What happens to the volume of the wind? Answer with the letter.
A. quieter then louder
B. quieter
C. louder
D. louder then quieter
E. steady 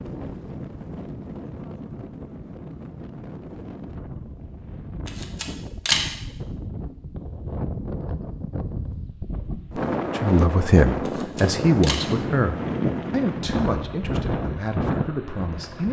C.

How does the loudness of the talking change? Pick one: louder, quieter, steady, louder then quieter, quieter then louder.
quieter.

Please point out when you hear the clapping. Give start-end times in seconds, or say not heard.
not heard.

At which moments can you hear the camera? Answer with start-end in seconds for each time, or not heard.
5.0-6.0, 11.1-12.1.